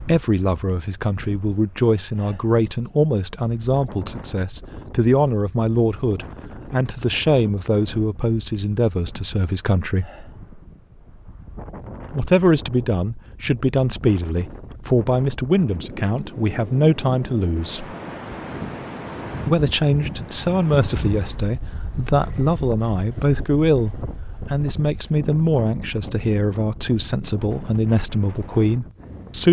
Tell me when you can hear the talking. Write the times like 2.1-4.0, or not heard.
0.0-10.1, 12.1-17.9, 19.4-29.4.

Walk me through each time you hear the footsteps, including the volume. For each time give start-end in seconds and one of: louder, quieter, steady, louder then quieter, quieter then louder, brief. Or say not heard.
not heard.